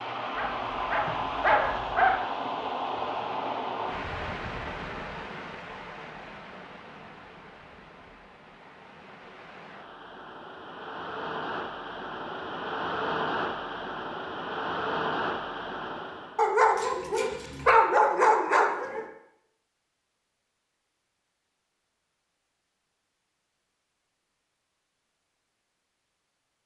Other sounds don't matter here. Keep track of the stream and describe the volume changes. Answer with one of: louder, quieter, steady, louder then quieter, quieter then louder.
quieter then louder.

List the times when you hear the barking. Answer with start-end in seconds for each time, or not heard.
0.3-2.1, 16.4-19.1.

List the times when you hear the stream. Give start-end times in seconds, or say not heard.
0.0-16.4.